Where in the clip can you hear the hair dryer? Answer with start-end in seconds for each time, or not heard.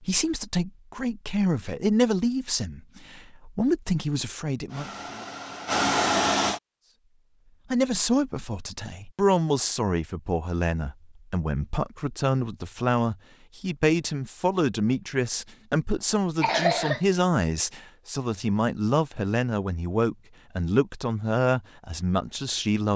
4.7-6.6.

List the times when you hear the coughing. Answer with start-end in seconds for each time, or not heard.
16.4-17.0.